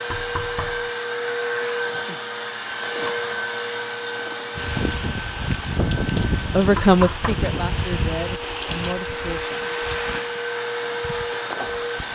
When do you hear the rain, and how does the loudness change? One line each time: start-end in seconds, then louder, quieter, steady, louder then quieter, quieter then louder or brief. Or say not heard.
4.5-12.1 quieter.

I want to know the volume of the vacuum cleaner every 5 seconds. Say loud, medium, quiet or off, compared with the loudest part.
loud, medium, loud.